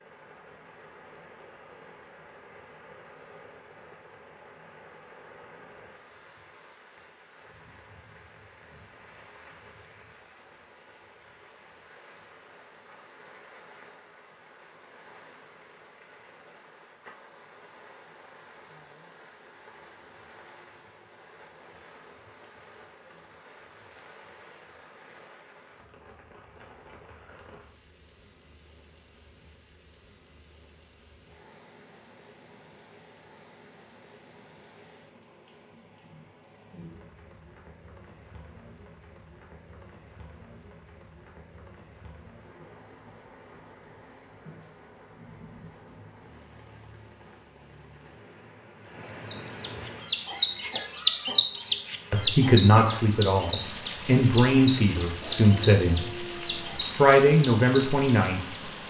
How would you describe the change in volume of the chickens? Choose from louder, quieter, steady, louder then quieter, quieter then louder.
quieter.